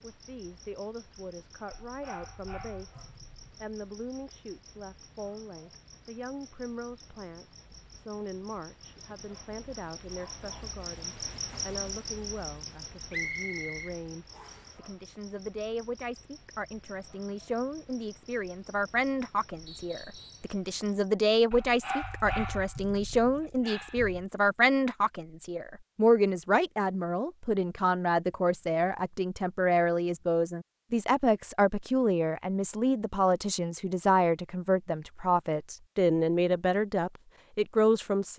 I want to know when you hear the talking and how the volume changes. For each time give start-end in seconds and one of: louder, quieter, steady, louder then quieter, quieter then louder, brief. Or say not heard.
0.0-38.3 louder.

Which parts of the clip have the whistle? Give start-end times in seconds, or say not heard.
13.1-14.7, 19.6-20.5.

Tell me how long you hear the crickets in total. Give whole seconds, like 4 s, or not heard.
21 s.